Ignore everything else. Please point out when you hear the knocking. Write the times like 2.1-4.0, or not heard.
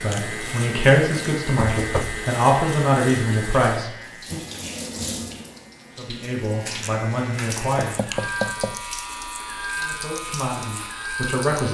1.6-2.2, 7.8-8.8.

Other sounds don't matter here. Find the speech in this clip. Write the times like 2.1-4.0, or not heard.
0.0-4.5, 6.0-8.0, 9.8-11.6.